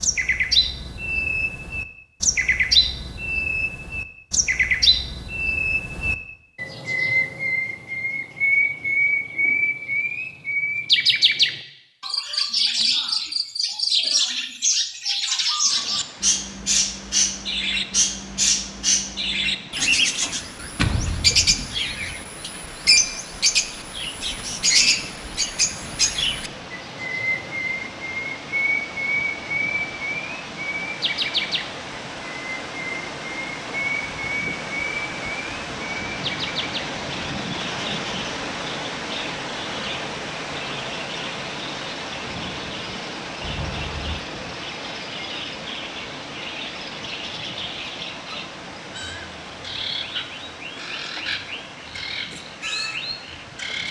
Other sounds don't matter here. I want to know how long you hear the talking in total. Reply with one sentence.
You can't hear the talking here.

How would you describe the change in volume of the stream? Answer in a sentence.
The loudness of the stream goes up, then down.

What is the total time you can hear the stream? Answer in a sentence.
You can hear the stream for 38 seconds altogether.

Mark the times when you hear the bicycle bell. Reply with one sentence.
You can hear the bicycle bell from 43.4 to 44.2 s.